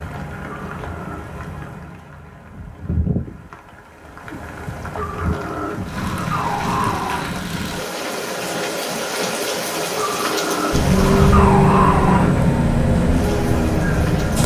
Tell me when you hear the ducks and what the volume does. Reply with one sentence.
You can't hear the ducks here.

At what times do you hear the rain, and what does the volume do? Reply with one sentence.
You can hear the rain from 0.0 to 14.4 s, getting louder.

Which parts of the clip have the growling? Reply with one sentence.
The growling can be heard from 0.5 to 1.3 s, from 5.0 to 7.5 s and from 9.9 to 12.5 s.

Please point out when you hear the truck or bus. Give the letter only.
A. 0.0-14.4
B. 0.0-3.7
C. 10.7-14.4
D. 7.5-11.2
C.